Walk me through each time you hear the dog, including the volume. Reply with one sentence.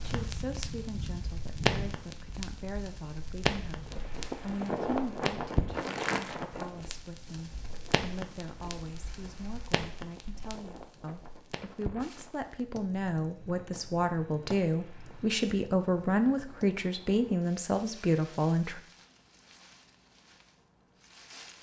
You can't hear the dog here.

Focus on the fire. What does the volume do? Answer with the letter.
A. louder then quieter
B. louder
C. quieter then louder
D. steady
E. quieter
E.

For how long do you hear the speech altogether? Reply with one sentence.
The speech can be heard for 19 seconds in total.